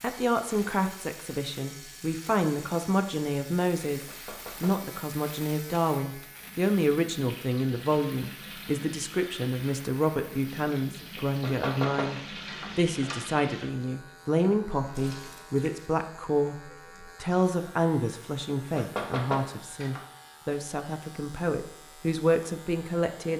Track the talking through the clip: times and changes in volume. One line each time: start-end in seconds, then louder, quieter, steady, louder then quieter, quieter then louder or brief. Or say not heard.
0.0-23.3 steady.